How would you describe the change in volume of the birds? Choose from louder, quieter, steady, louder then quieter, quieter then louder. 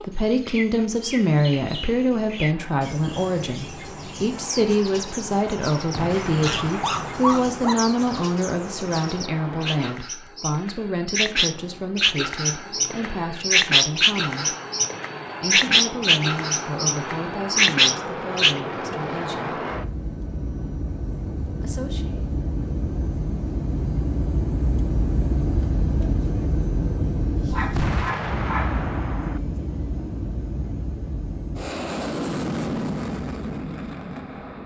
louder.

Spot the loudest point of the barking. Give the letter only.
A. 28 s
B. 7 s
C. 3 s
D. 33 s
B.